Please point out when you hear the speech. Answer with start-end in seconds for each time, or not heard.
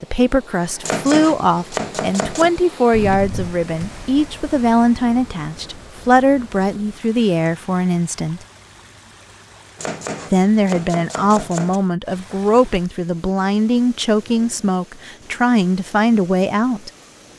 0.0-8.4, 10.3-16.9.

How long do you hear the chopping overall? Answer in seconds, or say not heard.
4 s.